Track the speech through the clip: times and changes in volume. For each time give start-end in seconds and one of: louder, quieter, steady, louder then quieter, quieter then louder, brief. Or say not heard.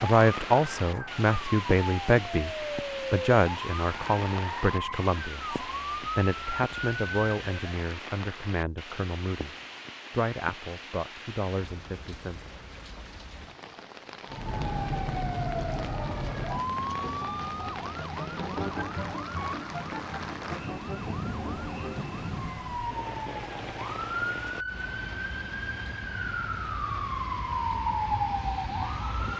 0.0-12.7 quieter.